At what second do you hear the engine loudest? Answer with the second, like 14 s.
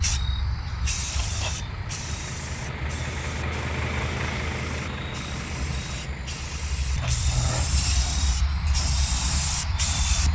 4 s.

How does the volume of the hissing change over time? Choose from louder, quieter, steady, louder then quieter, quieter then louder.
quieter then louder.